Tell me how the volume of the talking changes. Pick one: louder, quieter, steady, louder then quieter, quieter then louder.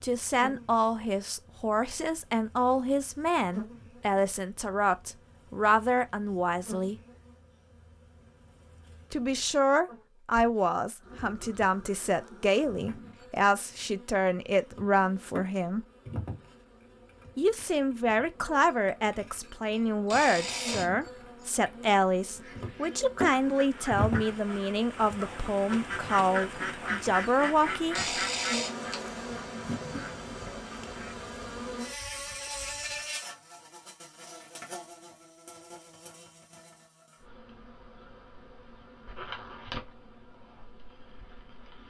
steady.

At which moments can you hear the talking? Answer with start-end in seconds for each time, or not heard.
0.0-7.0, 9.1-15.8, 17.4-28.0.